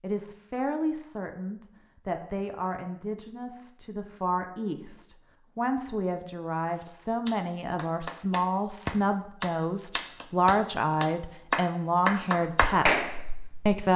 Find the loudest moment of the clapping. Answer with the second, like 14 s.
13 s.